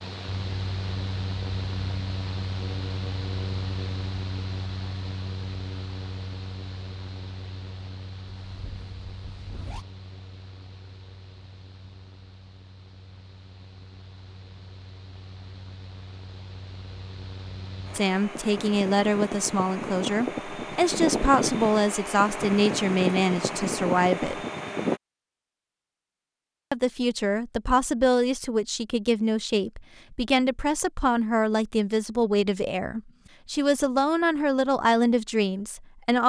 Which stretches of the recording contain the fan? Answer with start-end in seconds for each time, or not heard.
0.0-25.0.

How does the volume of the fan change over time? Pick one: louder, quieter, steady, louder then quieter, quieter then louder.
quieter then louder.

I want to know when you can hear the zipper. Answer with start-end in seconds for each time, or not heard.
8.4-9.8.